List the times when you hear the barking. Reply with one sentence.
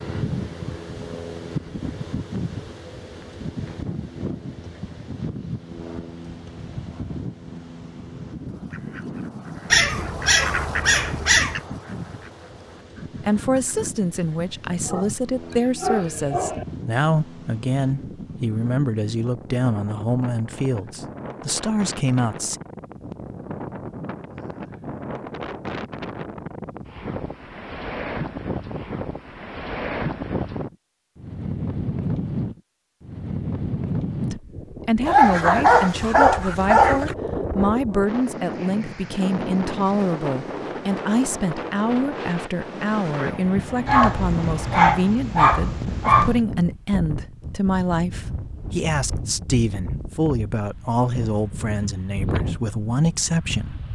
You can hear the barking from 9.7 to 11.6 s, from 14.7 to 16.6 s, from 35.0 to 37.1 s and from 43.9 to 46.4 s.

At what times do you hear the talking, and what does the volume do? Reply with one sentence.
You can hear the talking from 13.2 to 22.6 s, at a steady volume; and from 34.3 to 53.9 s, at a steady volume.